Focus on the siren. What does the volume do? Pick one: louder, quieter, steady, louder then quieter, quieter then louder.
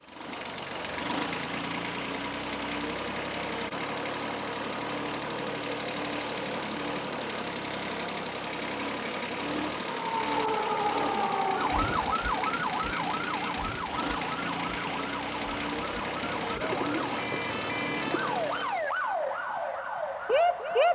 quieter then louder.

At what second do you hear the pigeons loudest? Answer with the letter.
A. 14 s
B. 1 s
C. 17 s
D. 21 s
C.